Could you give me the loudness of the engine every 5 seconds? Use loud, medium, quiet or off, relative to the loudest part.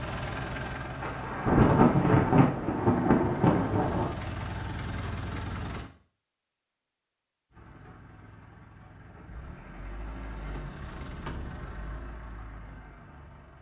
loud, medium, medium.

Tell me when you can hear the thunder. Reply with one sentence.
You can hear the thunder from 1.0 to 4.2 s.